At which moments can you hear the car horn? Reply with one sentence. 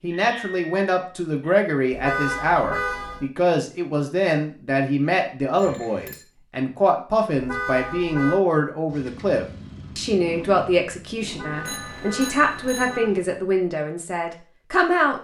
The car horn can be heard from 1.9 to 3.3 s, from 7.3 to 8.4 s and from 11.2 to 13.1 s.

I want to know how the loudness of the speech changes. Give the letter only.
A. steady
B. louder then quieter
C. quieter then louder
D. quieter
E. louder
A.